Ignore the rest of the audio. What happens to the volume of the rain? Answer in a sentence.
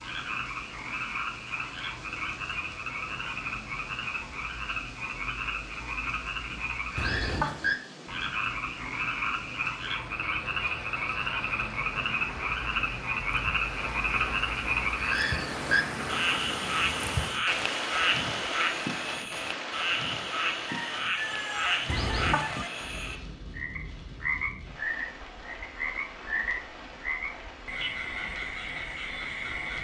The loudness of the rain goes up, then down.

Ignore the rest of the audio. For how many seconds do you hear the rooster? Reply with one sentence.
The rooster can be heard for 2 seconds in total.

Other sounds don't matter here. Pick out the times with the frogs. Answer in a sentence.
The frogs can be heard from 0.0 to 29.7 s.